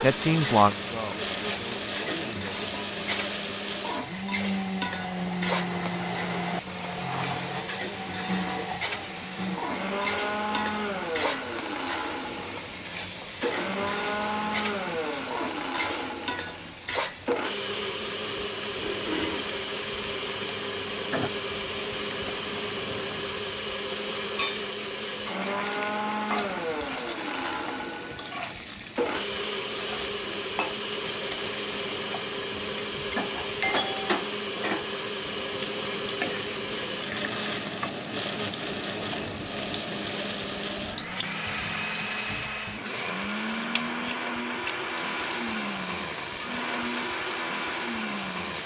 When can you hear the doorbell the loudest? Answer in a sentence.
The volume of the doorbell peaks at 34 seconds.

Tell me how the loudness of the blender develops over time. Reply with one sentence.
The volume of the blender stays about the same.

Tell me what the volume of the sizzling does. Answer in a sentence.
The volume of the sizzling stays about the same.